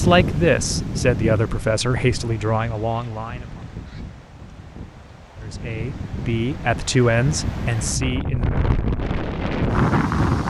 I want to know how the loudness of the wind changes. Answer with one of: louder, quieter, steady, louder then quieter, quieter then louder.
quieter then louder.